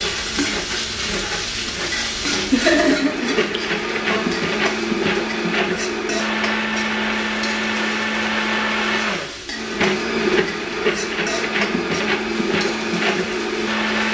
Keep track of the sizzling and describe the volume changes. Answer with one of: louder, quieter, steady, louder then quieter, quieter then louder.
quieter.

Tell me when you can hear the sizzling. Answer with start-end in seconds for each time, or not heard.
0.0-14.1.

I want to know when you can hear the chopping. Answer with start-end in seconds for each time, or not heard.
not heard.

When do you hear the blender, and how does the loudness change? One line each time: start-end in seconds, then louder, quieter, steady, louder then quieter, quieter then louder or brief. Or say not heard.
0.0-14.1 louder.